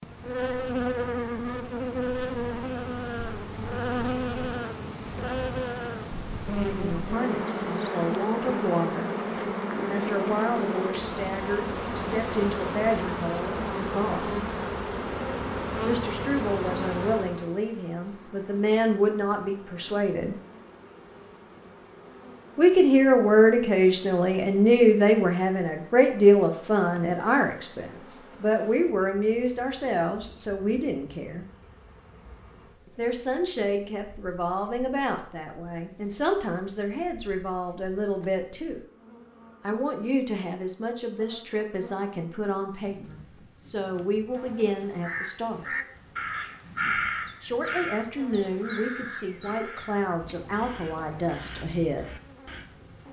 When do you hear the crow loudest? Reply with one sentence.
The loudest moment of the crow is at 47 seconds.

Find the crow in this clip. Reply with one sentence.
The crow can be heard from 45.0 to 52.7 s.